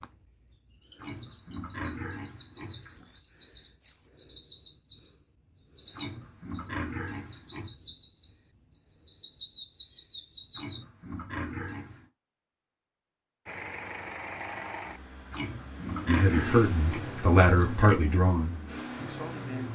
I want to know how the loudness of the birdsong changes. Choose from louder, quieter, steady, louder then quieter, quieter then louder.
steady.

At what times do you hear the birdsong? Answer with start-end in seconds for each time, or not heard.
0.0-10.8.